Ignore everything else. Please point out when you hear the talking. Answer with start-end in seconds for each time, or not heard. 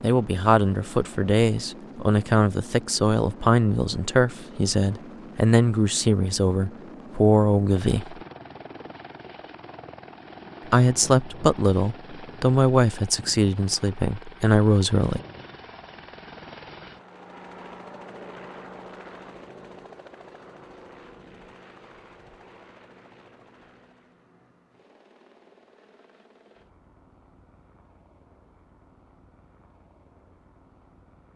0.0-8.2, 10.7-15.2.